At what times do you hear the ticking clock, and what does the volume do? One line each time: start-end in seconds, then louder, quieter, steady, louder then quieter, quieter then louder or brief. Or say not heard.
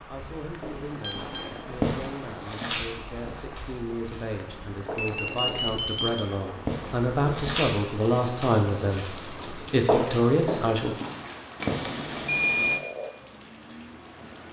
not heard.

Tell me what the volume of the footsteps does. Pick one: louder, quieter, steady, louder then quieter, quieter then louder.
quieter then louder.